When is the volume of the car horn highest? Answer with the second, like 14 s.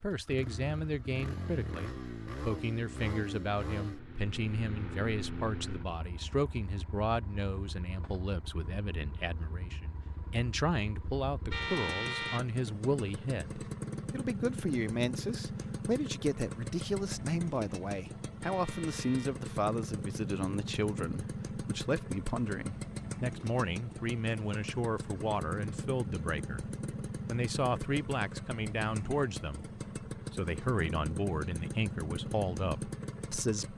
12 s.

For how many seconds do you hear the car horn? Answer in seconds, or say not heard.
2 s.